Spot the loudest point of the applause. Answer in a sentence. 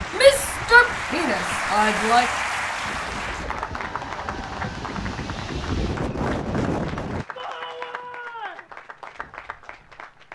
The loudest moment of the applause is at 2 seconds.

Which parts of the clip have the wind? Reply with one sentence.
The wind can be heard from 0.0 to 7.2 s.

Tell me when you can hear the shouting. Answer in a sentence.
You can hear the shouting from 0.1 to 2.3 s and from 7.3 to 8.7 s.